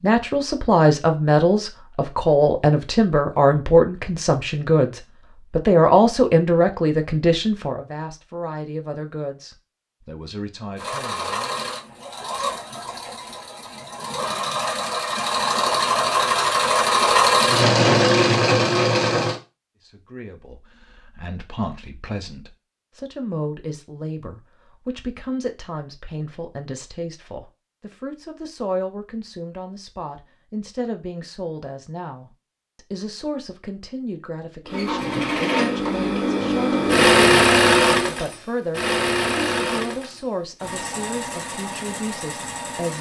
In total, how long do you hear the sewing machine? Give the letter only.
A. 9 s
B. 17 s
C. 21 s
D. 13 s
B.